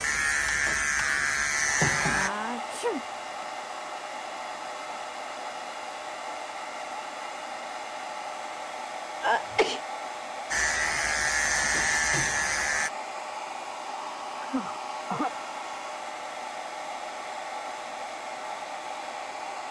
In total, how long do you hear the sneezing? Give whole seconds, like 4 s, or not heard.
3 s.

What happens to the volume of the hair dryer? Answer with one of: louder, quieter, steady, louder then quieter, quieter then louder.
steady.